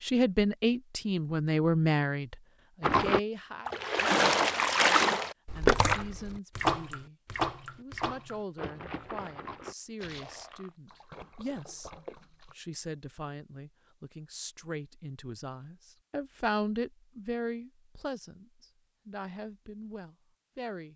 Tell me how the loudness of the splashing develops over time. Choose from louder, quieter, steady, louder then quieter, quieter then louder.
quieter.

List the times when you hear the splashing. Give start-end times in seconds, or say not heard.
2.8-12.6.